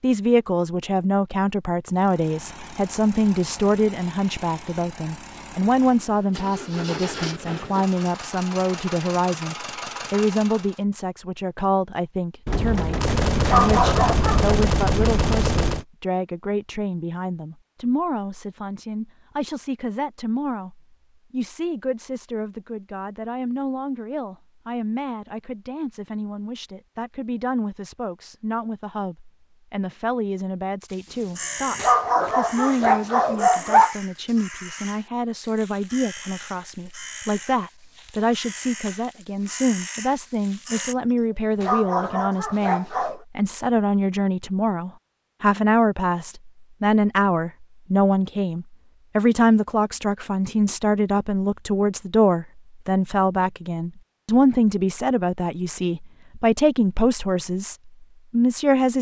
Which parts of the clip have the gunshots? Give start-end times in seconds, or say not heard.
12.4-15.8.